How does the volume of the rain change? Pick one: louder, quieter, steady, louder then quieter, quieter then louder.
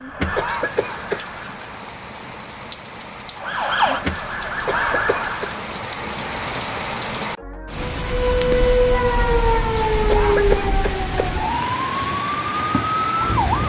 louder.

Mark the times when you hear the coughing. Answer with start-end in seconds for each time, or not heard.
0.3-1.2, 4.7-5.5, 10.1-11.3.